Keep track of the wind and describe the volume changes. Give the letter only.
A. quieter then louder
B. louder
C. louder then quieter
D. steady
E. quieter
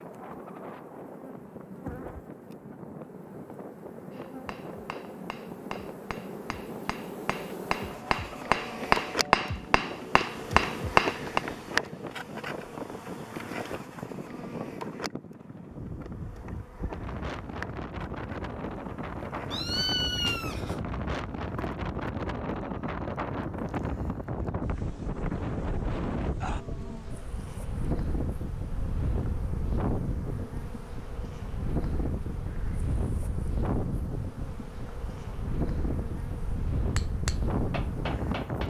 B.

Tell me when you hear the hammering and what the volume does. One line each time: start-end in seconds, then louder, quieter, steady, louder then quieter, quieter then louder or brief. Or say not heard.
4.1-11.4 louder
37.0-38.6 brief.